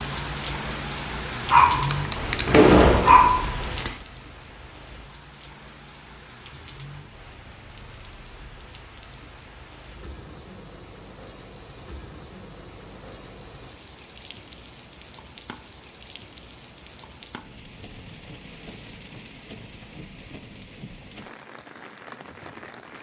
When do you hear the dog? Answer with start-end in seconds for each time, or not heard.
1.5-4.0.